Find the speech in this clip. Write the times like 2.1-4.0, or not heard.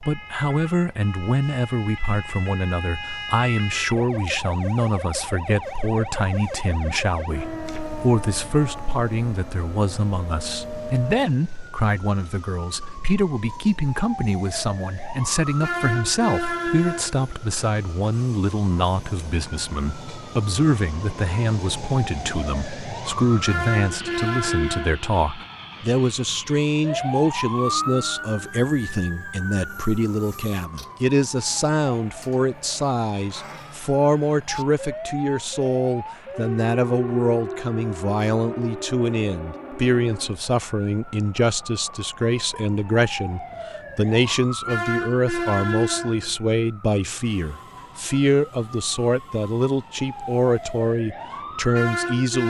0.0-52.4.